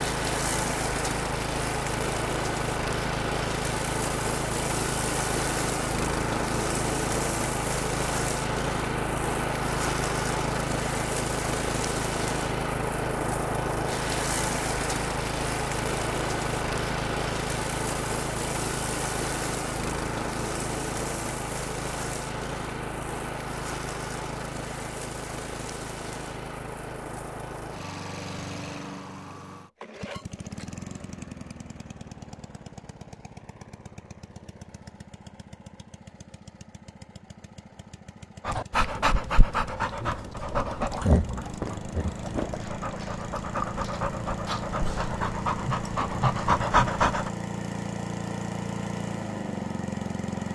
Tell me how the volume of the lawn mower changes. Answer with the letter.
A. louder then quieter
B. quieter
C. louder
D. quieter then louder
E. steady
D.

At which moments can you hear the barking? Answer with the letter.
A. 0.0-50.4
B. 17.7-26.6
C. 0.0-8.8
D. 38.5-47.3
D.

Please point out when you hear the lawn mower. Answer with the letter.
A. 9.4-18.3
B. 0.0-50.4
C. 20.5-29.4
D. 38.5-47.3
B.